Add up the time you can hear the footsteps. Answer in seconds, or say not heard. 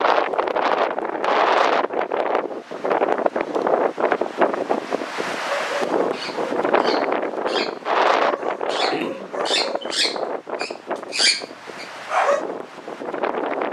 not heard.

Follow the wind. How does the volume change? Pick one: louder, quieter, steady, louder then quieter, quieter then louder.
quieter.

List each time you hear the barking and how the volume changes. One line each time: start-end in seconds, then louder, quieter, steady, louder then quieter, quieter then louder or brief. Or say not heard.
5.4-12.4 louder.